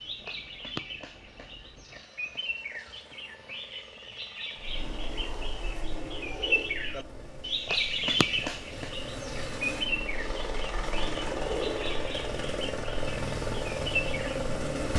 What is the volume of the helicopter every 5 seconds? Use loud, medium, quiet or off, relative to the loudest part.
quiet, medium, loud.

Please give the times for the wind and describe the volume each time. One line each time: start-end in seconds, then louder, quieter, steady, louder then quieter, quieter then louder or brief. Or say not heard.
4.5-14.9 quieter then louder.